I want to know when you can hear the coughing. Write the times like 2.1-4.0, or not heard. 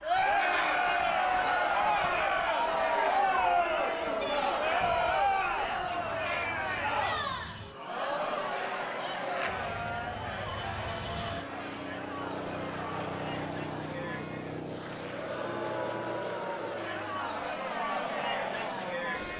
not heard.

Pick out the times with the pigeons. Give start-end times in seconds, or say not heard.
not heard.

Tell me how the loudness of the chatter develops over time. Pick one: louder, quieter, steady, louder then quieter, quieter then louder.
quieter then louder.